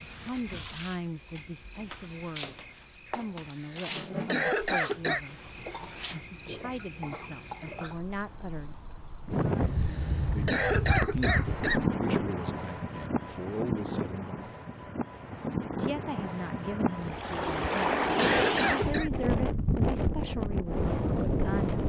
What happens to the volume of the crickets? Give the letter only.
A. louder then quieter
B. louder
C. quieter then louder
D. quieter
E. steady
E.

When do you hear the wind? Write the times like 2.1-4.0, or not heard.
9.2-21.8.